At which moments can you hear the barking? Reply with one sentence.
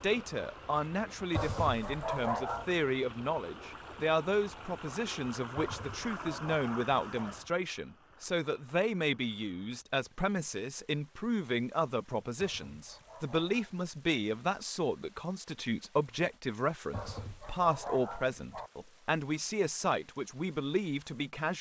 The barking can be heard from 1.3 to 2.8 s, from 5.5 to 7.3 s, from 12.3 to 13.8 s and from 16.9 to 18.7 s.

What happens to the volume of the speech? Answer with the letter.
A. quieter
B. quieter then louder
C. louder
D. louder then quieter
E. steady
E.